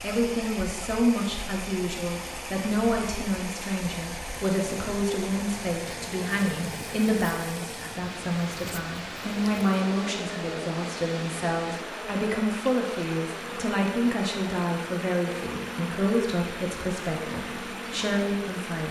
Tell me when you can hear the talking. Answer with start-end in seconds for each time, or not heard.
0.0-18.8.